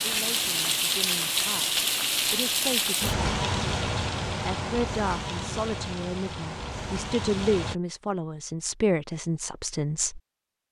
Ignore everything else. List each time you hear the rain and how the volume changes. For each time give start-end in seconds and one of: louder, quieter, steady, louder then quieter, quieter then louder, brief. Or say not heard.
0.0-7.8 quieter.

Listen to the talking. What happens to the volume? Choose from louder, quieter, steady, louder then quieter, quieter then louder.
louder.